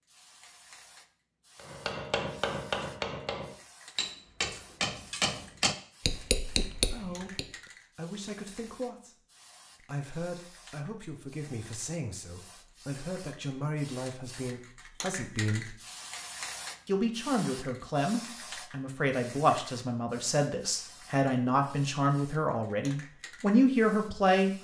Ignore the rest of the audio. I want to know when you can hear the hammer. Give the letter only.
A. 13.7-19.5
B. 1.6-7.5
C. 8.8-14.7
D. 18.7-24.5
B.